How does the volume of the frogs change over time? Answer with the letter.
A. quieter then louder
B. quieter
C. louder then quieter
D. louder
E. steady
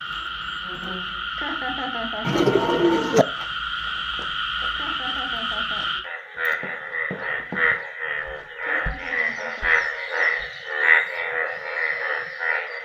D.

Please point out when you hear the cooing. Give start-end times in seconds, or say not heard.
2.2-3.2.